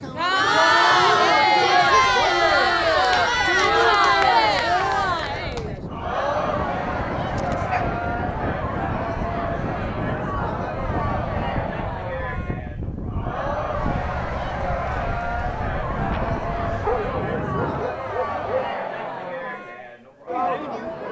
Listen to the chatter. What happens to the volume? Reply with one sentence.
The volume of the chatter goes down.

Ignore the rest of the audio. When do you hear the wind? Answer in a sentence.
You can hear the wind from 0.0 to 17.9 s.